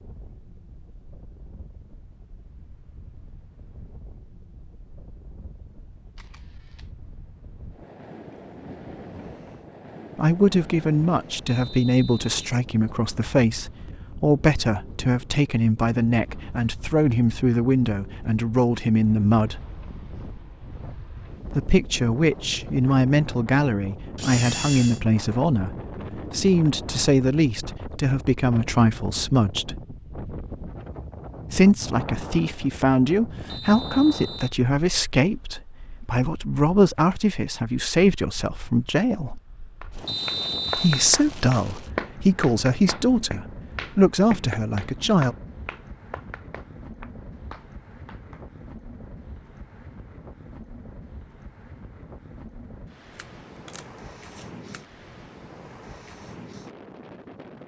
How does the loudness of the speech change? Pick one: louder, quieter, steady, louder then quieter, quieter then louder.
steady.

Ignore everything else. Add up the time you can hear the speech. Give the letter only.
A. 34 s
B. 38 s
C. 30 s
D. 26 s
C.